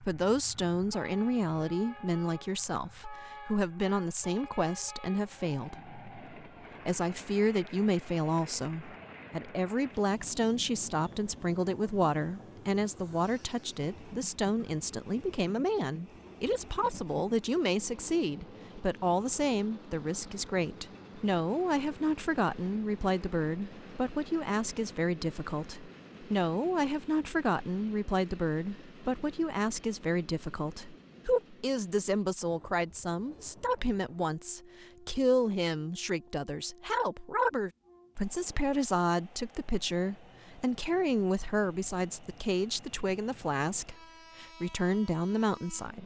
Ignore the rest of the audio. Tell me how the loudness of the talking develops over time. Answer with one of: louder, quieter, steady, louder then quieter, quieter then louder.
steady.